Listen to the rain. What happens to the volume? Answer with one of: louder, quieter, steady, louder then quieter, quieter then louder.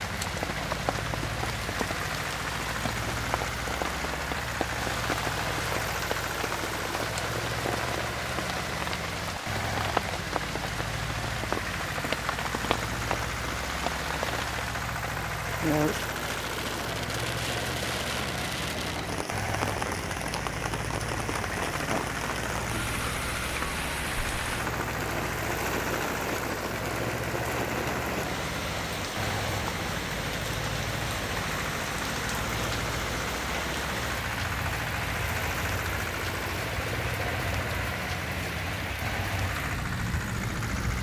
steady.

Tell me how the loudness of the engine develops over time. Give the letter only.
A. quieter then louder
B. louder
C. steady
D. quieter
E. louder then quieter
C.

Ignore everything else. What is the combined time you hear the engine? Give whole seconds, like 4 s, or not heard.
41 s.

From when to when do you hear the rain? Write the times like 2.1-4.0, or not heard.
0.0-40.9.